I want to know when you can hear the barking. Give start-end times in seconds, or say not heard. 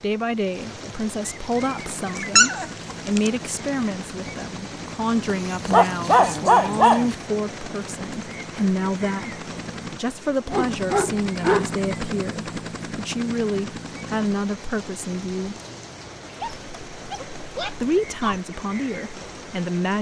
2.2-3.3, 5.5-7.2, 10.4-11.8, 16.4-18.4.